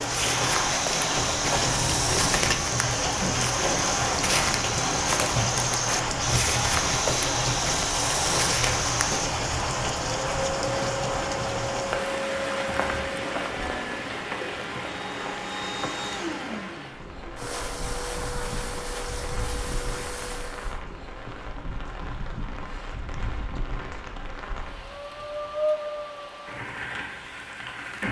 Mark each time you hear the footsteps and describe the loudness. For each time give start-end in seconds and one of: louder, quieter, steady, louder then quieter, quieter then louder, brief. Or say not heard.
0.0-9.3 steady.